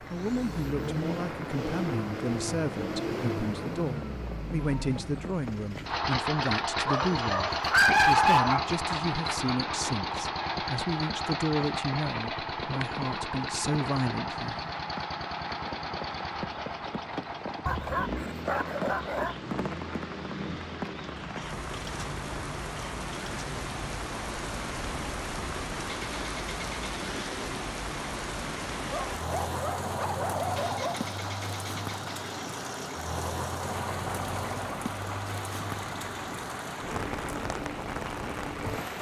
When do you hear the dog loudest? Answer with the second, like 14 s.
8 s.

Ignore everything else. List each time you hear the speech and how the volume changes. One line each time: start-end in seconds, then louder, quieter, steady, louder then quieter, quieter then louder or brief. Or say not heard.
0.0-14.7 steady.